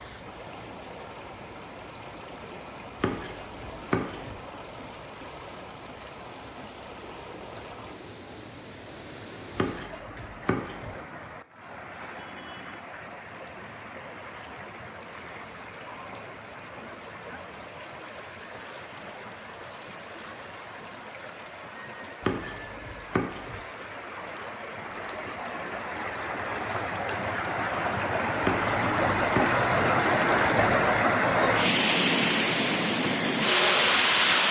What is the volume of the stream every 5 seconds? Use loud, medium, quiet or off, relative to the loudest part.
quiet, quiet, quiet, quiet, quiet, medium, loud.